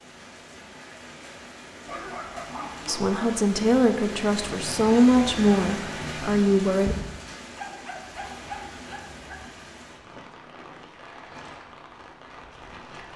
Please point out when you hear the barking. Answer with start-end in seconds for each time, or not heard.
1.9-3.3, 7.5-9.4.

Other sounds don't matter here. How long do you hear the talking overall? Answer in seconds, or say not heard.
4 s.